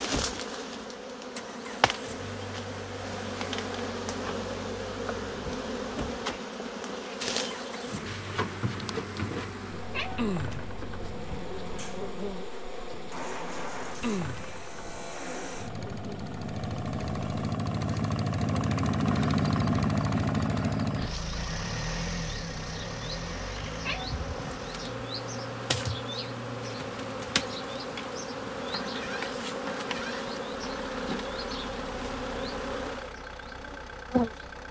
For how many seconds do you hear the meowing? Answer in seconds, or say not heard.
2 s.